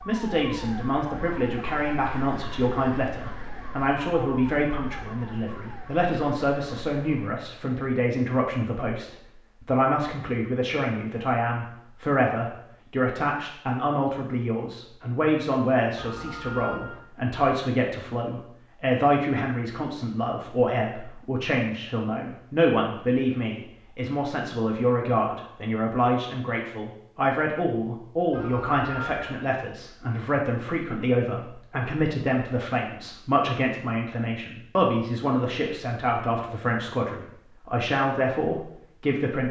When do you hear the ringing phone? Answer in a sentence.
The ringing phone can be heard from 15.9 to 17.0 s and from 28.3 to 29.4 s.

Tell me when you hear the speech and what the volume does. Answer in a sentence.
You can hear the speech from 0.1 to 39.4 s, at a steady volume.